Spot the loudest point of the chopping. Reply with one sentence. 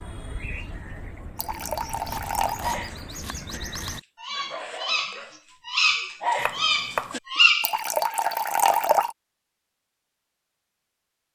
The loudest moment of the chopping is at 7 seconds.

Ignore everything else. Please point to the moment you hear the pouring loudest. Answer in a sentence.
The loudest moment of the pouring is at 9 seconds.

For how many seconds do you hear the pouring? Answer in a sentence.
The pouring can be heard for 3 seconds in total.